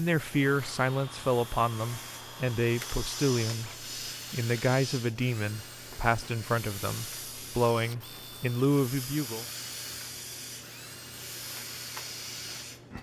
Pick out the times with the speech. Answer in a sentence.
You can hear the speech from 0.0 to 9.4 s.